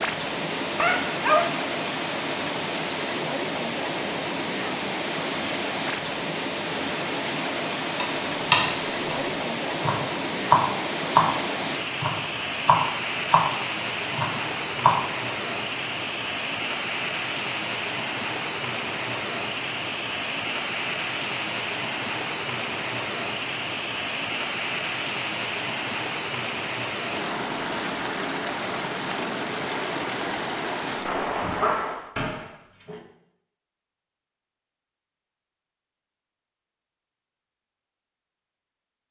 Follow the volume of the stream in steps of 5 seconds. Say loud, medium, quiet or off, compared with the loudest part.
loud, loud, loud, loud, loud, loud, loud, off.